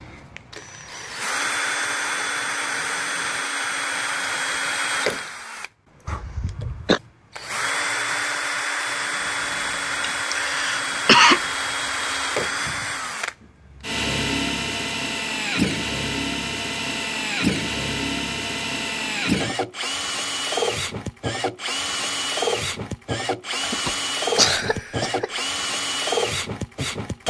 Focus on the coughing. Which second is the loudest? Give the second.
11 s.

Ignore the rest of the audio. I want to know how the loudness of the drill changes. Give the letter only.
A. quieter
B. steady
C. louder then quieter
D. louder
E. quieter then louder
B.